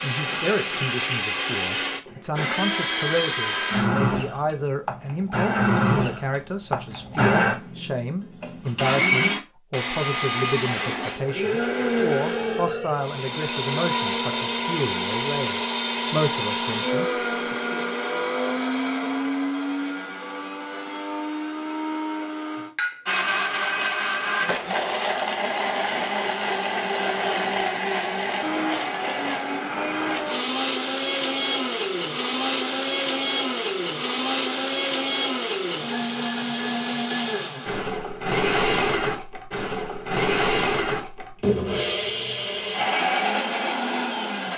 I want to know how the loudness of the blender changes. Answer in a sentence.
The loudness of the blender stays about the same.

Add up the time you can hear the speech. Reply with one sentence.
The speech can be heard for 18 seconds in total.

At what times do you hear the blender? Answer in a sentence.
You can hear the blender from 0.0 to 44.5 s.